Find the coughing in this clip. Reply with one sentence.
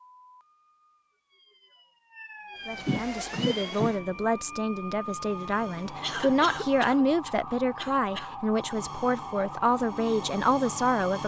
The coughing can be heard from 2.8 to 4.0 s and from 6.0 to 8.7 s.